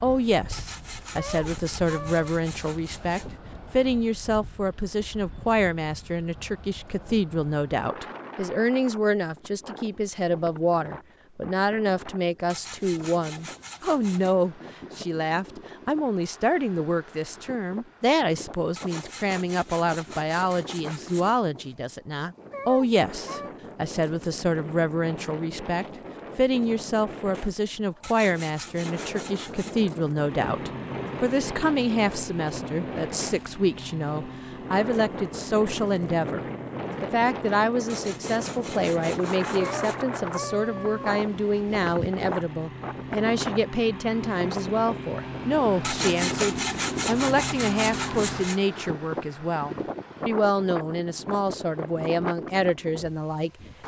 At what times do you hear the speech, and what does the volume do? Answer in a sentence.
The speech can be heard from 0.0 to 53.5 s, at a steady volume.